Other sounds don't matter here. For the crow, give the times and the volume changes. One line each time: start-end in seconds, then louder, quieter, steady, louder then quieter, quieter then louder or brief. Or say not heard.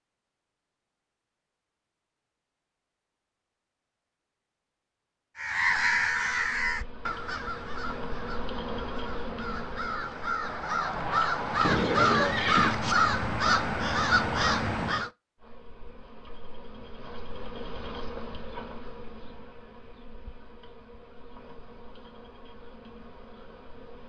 5.3-15.1 quieter then louder.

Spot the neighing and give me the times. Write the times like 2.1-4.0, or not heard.
11.6-12.8.